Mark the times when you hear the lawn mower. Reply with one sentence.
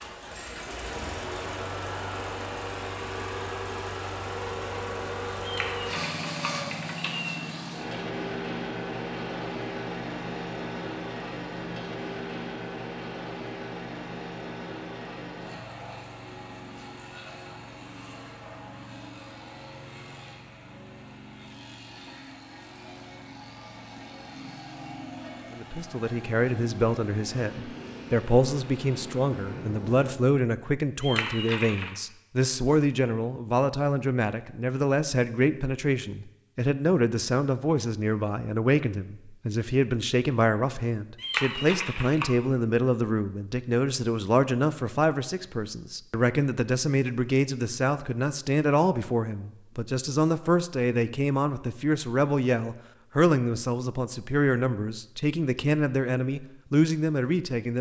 The lawn mower can be heard from 0.0 to 30.1 s.